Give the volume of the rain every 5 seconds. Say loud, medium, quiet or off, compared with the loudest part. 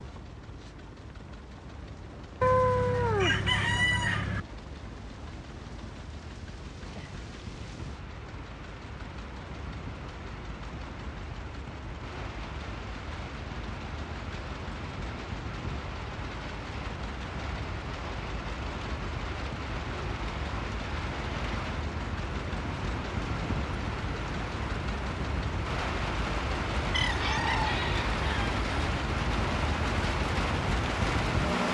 quiet, quiet, quiet, medium, medium, loud, loud.